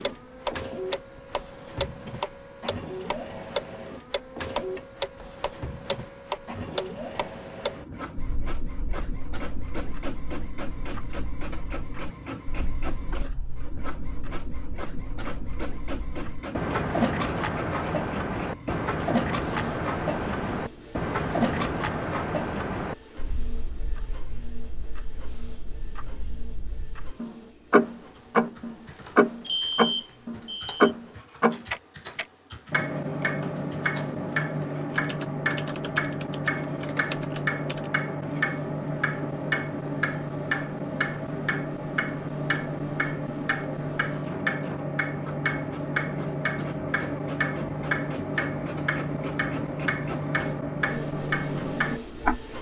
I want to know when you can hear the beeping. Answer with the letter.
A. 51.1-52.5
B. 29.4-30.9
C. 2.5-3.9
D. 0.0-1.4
B.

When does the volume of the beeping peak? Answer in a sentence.
The volume of the beeping peaks at 30 seconds.